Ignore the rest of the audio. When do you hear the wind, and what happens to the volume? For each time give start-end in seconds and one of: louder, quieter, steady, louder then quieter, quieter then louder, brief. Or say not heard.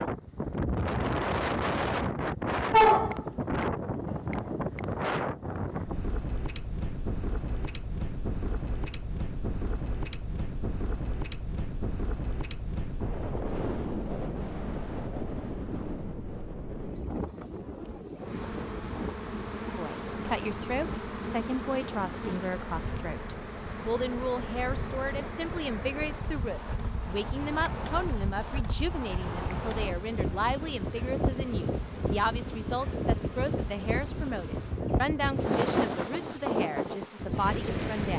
0.0-38.1 quieter then louder.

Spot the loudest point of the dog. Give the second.
3 s.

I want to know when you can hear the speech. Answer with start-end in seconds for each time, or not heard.
19.8-38.1.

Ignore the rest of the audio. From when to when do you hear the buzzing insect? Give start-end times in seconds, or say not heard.
18.1-38.1.